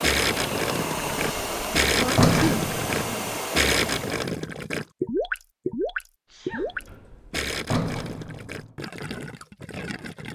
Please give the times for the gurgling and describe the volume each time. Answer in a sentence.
You can hear the gurgling from 0.0 to 10.3 s, getting quieter.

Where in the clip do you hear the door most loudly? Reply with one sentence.
The volume of the door peaks at 2 seconds.